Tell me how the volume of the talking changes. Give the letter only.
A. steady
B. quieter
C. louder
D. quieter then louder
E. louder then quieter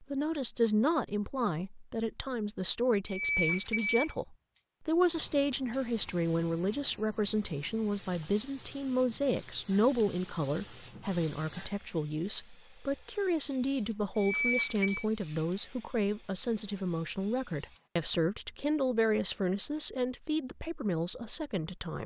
A.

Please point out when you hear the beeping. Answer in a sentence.
The beeping can be heard from 3.0 to 4.2 s and from 14.2 to 15.1 s.